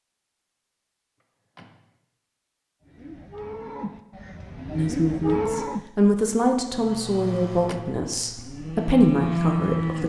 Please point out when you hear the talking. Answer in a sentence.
The talking can be heard from 4.7 to 10.0 s.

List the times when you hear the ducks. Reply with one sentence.
You can't hear the ducks here.